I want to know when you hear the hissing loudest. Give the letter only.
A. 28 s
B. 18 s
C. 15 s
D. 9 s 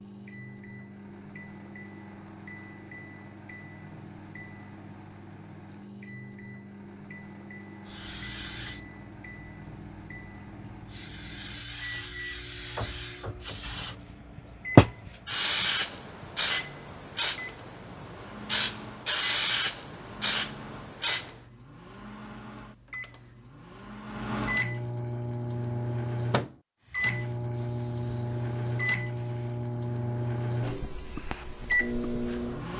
C.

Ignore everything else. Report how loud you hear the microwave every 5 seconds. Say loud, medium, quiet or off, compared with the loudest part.
quiet, quiet, quiet, quiet, medium, loud, loud.